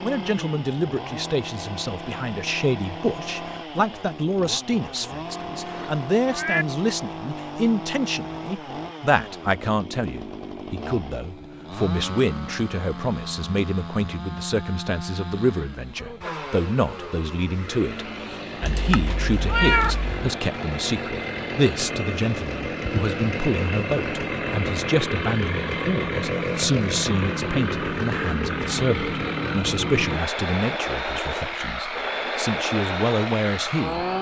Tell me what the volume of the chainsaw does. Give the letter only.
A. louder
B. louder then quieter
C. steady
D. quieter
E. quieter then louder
A.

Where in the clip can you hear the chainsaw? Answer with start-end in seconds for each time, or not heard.
0.0-34.1.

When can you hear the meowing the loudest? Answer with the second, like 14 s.
20 s.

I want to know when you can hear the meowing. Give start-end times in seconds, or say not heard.
5.7-6.7, 18.6-20.2.